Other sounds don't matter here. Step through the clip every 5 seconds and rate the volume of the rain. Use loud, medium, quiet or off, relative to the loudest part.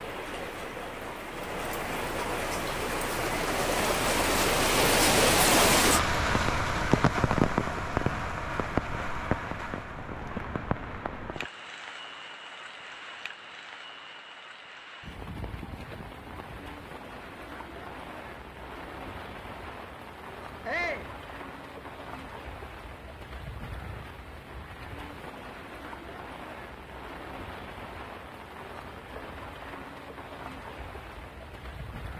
loud, loud, quiet, quiet, quiet, quiet, quiet.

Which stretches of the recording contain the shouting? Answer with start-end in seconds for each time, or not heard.
20.6-21.1.